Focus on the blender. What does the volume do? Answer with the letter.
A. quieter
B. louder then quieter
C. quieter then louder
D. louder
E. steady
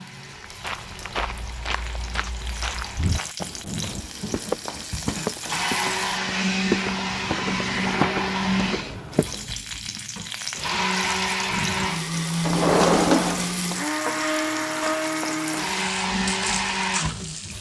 D.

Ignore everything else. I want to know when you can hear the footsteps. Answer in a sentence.
The footsteps can be heard from 0.2 to 9.6 s.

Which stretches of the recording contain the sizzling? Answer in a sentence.
The sizzling can be heard from 0.0 to 6.2 s and from 9.1 to 17.5 s.